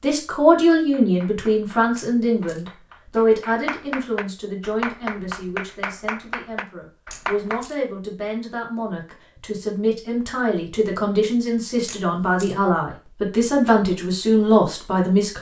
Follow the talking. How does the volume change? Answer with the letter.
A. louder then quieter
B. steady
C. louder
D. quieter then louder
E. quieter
D.